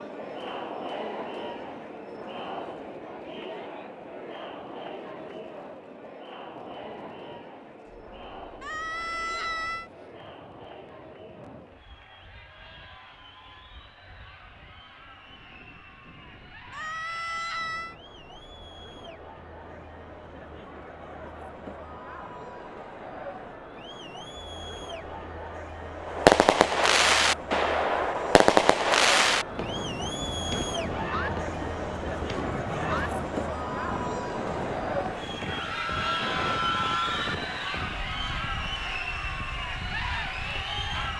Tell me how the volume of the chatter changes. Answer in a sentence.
The volume of the chatter goes down, then up.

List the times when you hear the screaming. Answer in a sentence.
The screaming can be heard from 8.6 to 9.9 s, from 16.7 to 17.9 s and from 35.5 to 37.4 s.